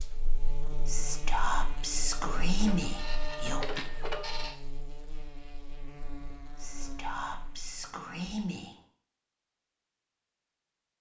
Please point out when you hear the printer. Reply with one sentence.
You can hear the printer from 2.1 to 4.5 s.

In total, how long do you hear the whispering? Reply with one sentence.
The whispering can be heard for 5 seconds in total.